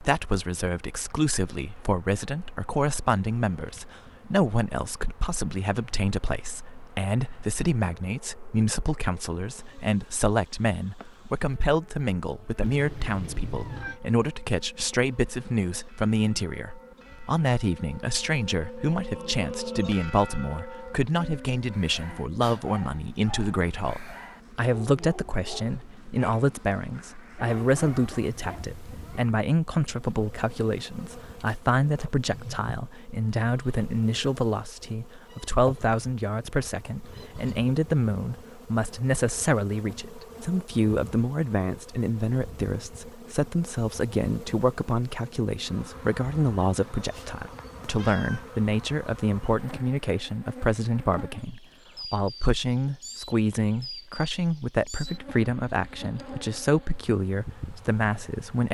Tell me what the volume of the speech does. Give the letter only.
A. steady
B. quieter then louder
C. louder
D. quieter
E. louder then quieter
A.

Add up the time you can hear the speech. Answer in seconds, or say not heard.
59 s.